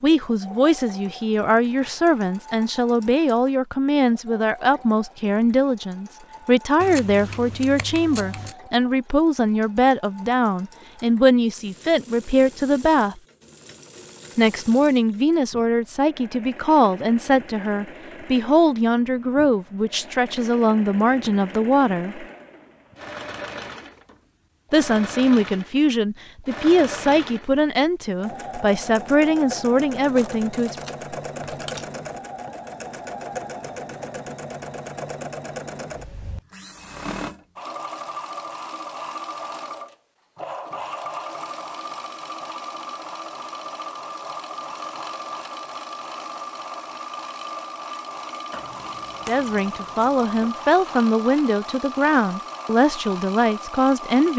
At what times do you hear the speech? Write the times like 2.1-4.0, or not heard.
0.0-13.2, 14.3-22.2, 24.7-30.8, 49.2-54.3.